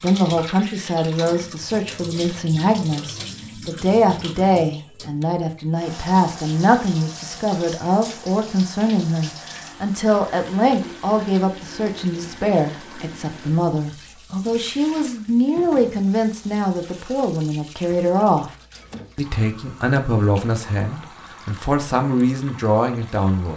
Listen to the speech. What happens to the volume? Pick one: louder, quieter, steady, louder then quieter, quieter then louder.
steady.